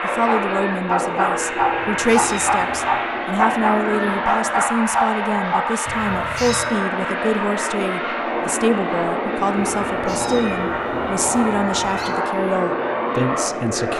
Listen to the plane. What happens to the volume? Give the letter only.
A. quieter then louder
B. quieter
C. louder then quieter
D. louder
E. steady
E.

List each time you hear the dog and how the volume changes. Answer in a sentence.
You can hear the dog from 0.2 to 5.7 s, at a steady volume.